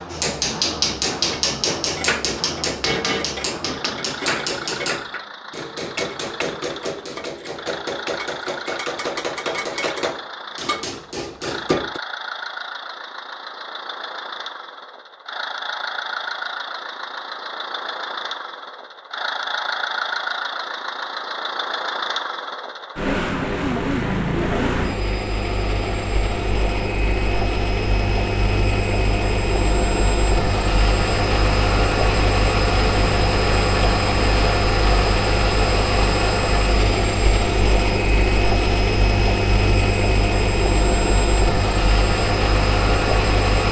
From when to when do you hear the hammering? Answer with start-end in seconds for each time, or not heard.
0.1-12.0.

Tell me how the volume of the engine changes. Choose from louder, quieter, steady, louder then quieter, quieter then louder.
louder.